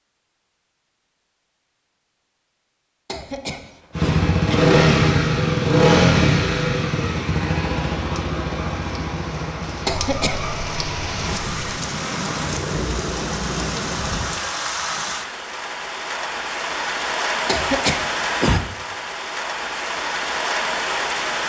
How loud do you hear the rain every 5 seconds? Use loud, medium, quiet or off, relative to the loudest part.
off, medium, loud, loud, loud.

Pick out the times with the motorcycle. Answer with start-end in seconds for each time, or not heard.
4.0-13.8.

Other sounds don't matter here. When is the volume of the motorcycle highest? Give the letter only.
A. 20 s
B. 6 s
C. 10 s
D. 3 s
B.